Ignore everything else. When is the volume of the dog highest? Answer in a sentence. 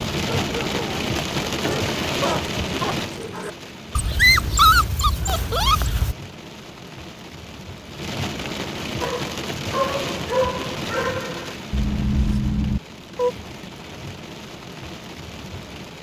The loudest moment of the dog is at 5 seconds.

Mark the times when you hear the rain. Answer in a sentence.
The rain can be heard from 0.0 to 15.9 s.